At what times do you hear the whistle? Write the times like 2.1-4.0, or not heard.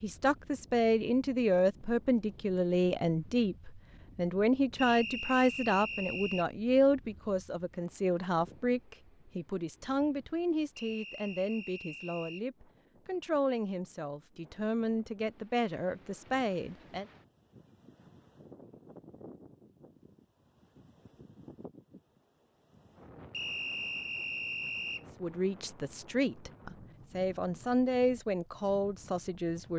4.8-6.5, 10.8-12.4, 23.3-25.1.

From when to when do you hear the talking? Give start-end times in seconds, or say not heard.
0.0-17.1, 25.2-29.7.